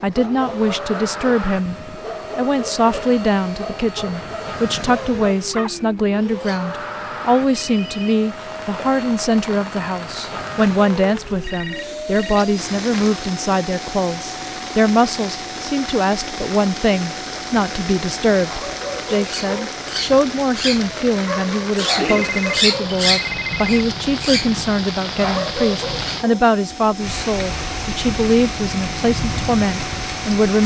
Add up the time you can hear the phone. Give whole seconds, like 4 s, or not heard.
4 s.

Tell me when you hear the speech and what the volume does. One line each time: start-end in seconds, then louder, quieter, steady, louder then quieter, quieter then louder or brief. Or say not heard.
0.0-1.8 brief
2.4-30.6 steady.